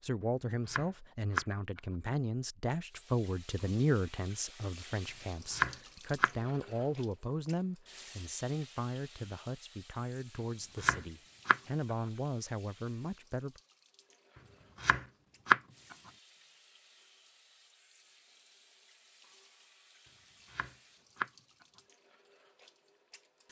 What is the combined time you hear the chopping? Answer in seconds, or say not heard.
4 s.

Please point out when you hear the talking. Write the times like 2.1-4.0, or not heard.
0.0-13.6.